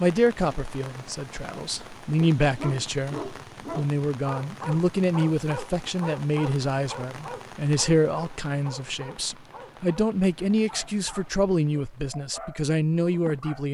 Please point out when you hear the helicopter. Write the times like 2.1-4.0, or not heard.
not heard.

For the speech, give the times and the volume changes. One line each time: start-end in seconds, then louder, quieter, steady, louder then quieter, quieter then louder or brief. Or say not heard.
0.0-13.6 steady.